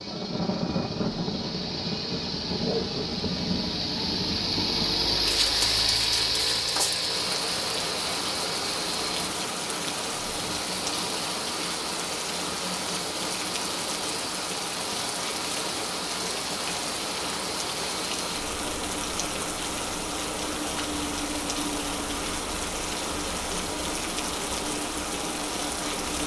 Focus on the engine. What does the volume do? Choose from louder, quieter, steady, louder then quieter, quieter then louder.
quieter.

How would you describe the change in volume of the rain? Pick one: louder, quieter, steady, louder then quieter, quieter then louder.
steady.